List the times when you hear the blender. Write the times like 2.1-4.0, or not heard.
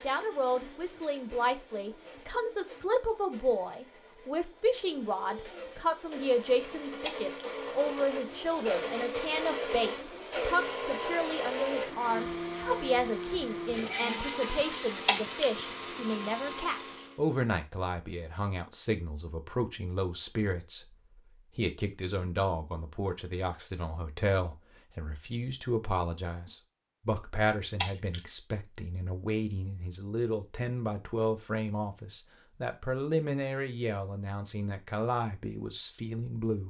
0.0-17.2.